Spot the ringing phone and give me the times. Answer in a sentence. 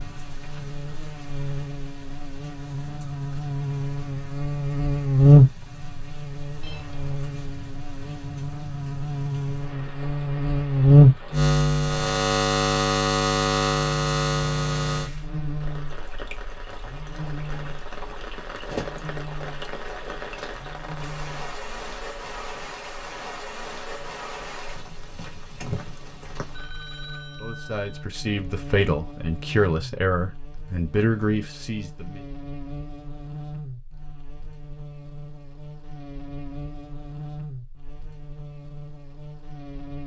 The ringing phone can be heard from 6.6 to 7.2 s and from 26.5 to 28.1 s.